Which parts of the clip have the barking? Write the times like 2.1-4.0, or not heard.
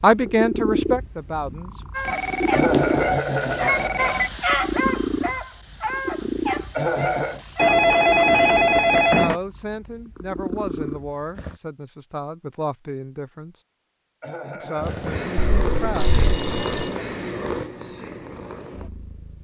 1.9-7.7.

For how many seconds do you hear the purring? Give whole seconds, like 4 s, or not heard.
16 s.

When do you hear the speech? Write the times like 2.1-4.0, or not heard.
0.0-1.9, 9.1-13.6, 14.6-16.2.